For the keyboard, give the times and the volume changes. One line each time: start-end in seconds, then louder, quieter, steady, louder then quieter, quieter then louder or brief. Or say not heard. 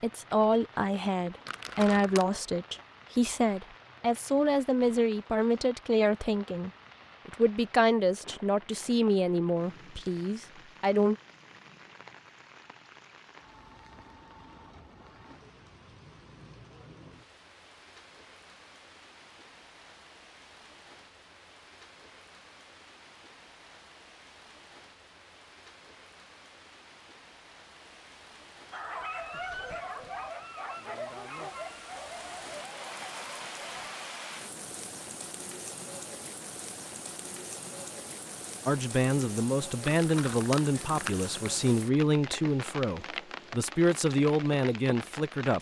not heard.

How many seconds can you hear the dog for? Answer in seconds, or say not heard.
5 s.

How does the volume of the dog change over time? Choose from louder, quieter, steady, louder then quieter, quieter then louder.
quieter.